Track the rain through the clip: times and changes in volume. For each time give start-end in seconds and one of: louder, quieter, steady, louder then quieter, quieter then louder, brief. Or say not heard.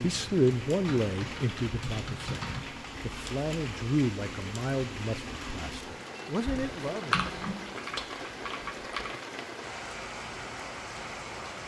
0.0-11.6 steady.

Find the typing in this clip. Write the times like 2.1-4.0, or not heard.
0.1-2.6, 6.5-9.1.